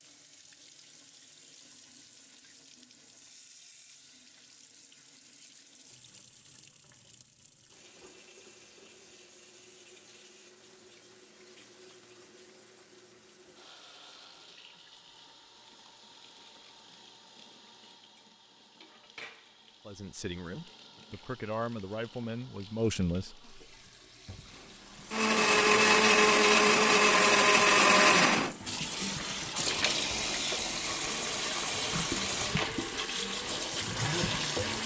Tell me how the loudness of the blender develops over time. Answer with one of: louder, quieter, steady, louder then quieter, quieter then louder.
quieter.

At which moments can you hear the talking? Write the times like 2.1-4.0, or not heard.
19.9-23.4.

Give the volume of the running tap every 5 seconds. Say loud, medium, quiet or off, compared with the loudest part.
quiet, quiet, quiet, quiet, quiet, loud, loud.